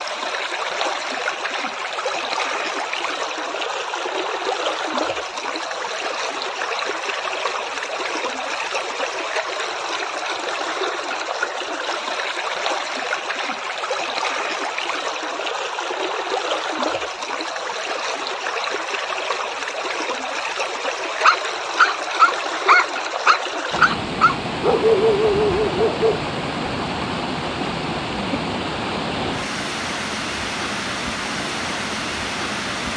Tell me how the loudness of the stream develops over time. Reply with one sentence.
The volume of the stream stays about the same.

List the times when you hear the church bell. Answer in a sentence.
The church bell can't be heard in this clip.